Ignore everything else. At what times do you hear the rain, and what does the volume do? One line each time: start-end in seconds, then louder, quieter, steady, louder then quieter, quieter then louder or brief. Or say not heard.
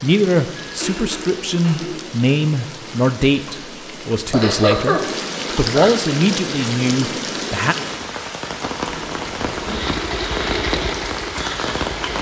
0.0-12.1 louder.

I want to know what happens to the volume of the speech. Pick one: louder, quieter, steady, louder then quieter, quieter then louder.
steady.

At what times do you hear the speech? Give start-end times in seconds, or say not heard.
0.0-7.8.